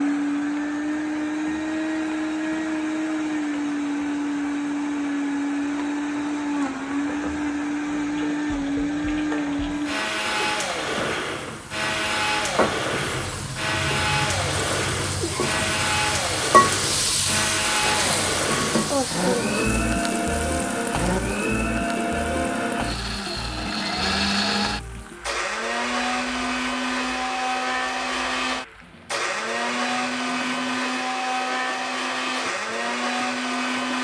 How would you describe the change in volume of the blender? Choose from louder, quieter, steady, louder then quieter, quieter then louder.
steady.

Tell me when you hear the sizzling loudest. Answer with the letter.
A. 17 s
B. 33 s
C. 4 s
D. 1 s
A.